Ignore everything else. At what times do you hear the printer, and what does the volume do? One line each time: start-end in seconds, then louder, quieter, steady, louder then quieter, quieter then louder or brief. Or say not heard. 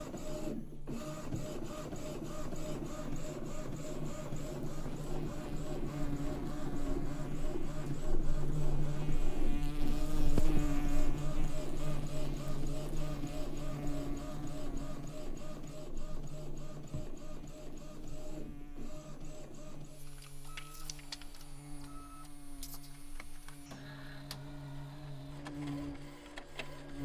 0.0-27.0 quieter.